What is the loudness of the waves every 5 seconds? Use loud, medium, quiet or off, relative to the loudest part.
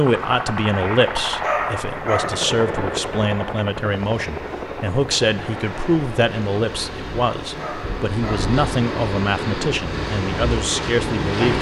quiet, medium, loud.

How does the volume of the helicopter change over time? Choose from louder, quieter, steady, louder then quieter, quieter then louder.
quieter.